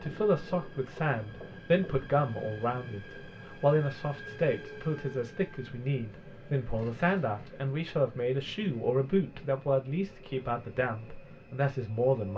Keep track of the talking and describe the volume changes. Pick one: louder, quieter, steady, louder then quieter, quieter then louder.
steady.